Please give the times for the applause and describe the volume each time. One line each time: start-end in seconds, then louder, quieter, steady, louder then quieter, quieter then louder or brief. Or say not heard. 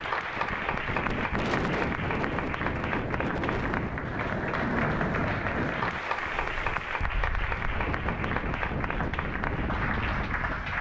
0.0-10.7 steady.